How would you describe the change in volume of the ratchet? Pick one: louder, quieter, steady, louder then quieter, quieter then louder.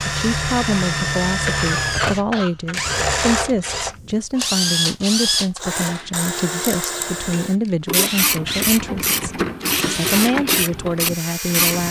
louder.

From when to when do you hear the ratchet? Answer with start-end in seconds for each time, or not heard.
5.8-11.8.